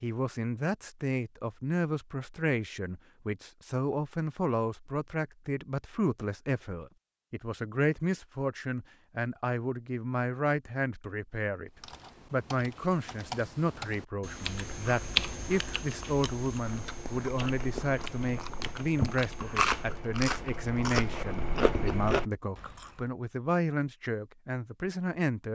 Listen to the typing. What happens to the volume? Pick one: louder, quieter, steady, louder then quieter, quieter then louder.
louder then quieter.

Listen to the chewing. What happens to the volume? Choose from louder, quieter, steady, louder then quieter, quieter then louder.
louder.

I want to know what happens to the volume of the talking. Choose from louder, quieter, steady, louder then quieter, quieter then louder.
steady.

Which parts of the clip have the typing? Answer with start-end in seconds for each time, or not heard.
11.8-19.8.